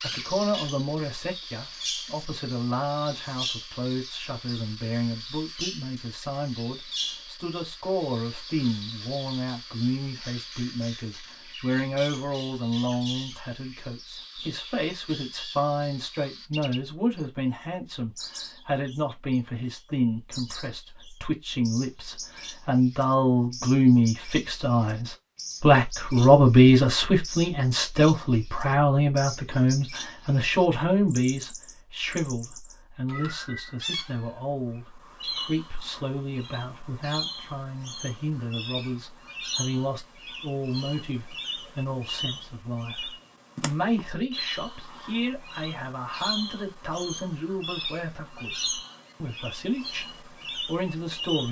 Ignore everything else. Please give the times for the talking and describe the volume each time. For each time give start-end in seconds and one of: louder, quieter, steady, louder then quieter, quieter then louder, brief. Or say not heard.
0.0-51.4 louder then quieter.